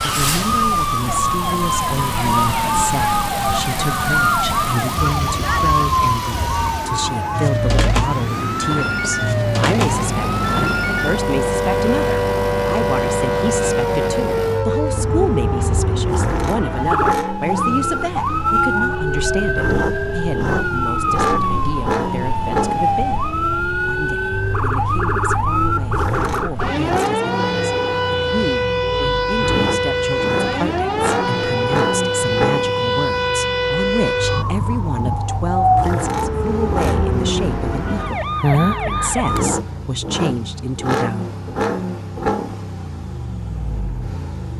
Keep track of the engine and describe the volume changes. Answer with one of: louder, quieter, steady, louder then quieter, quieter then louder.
steady.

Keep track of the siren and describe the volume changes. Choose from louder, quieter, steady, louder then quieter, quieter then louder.
steady.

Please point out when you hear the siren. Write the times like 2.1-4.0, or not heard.
0.0-39.5.